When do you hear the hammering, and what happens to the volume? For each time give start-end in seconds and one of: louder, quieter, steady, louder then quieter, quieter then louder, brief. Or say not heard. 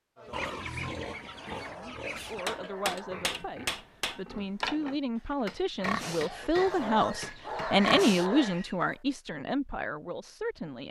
2.5-7.8 quieter.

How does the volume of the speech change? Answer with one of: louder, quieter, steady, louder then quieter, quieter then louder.
louder then quieter.